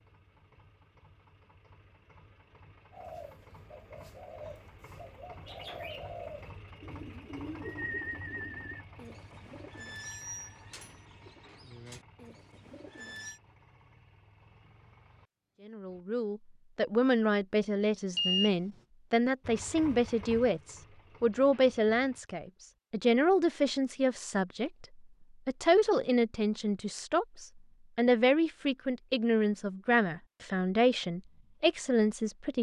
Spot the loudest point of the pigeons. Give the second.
8 s.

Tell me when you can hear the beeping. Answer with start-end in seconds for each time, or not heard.
18.1-18.6.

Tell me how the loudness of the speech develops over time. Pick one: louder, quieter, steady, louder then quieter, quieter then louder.
steady.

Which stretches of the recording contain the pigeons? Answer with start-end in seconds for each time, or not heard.
2.9-13.4.